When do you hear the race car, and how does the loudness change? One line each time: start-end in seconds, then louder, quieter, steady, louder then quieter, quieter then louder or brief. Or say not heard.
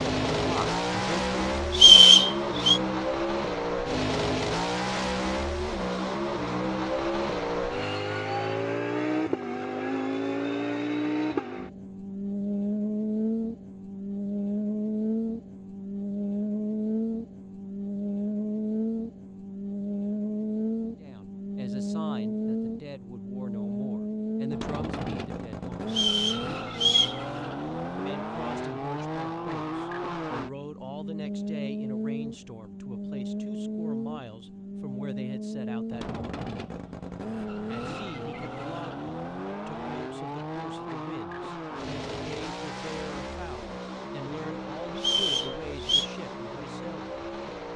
0.0-47.7 quieter.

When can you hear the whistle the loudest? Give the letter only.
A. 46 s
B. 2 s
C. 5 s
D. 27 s
B.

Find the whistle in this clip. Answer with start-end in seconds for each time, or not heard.
1.7-2.8, 25.9-27.2, 45.0-46.0.